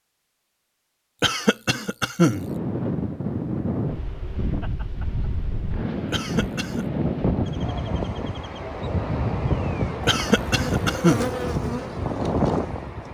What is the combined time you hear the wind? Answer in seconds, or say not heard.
11 s.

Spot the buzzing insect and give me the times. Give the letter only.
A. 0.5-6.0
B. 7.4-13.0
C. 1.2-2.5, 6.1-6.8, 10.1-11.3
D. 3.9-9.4
B.